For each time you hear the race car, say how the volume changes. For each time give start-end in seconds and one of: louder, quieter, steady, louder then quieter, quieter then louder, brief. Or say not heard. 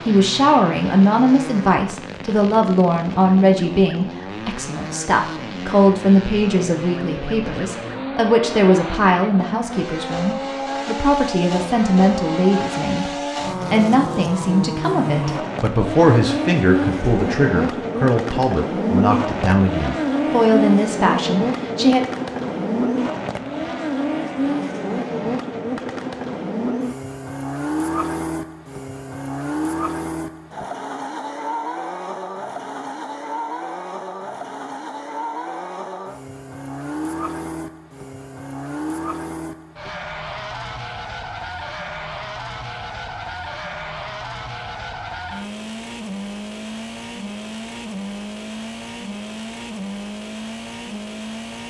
0.0-51.6 louder then quieter.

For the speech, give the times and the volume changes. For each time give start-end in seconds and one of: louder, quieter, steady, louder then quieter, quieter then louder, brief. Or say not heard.
0.0-22.0 steady.